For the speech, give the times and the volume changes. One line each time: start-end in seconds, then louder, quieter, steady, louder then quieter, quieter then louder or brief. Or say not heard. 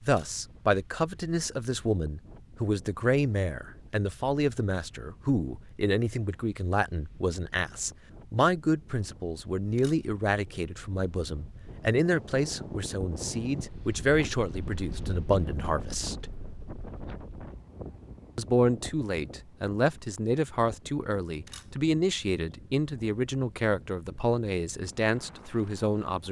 0.0-16.3 steady
18.4-26.2 steady.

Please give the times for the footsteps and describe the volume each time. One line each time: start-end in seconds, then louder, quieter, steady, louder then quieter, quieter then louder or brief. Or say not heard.
not heard.